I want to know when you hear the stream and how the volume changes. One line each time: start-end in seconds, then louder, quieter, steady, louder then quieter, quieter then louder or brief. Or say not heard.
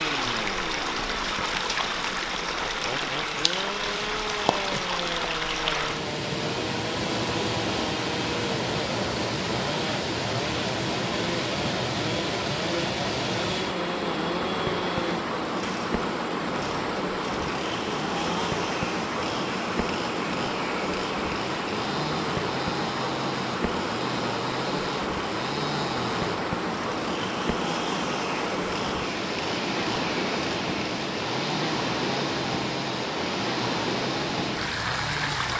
0.0-35.5 steady.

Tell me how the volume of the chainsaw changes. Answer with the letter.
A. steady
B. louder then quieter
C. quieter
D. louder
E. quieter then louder
A.